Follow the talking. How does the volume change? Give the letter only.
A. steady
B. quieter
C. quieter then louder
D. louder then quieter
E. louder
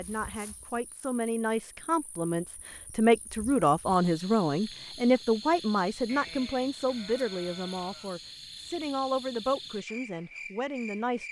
D.